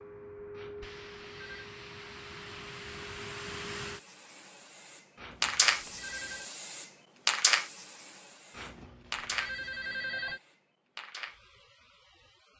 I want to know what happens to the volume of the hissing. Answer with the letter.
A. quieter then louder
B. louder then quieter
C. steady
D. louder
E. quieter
B.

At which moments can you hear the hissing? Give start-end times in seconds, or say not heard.
0.0-12.5.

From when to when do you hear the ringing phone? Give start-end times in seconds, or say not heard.
0.5-1.6, 5.2-6.5, 8.5-10.4.